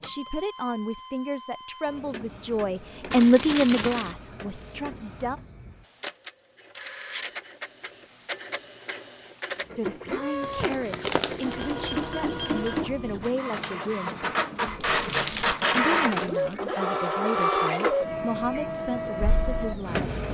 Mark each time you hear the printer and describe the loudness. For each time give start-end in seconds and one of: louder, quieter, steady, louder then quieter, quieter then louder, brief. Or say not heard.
0.0-20.3 louder.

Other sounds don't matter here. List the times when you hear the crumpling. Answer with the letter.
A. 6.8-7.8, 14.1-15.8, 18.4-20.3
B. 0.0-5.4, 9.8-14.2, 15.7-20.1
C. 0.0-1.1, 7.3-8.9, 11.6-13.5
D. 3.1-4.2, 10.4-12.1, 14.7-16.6
D.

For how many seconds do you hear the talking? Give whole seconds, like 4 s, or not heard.
14 s.